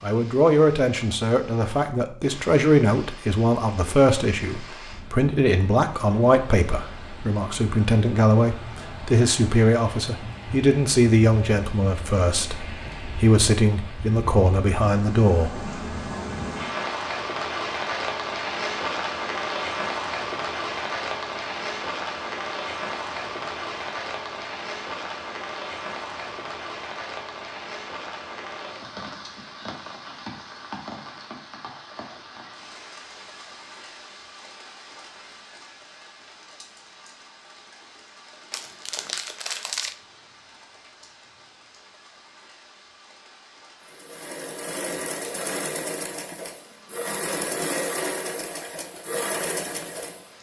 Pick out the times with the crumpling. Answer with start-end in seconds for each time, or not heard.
38.5-40.0.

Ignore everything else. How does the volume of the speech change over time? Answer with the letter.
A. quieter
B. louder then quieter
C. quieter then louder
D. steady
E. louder
D.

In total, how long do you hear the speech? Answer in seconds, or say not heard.
16 s.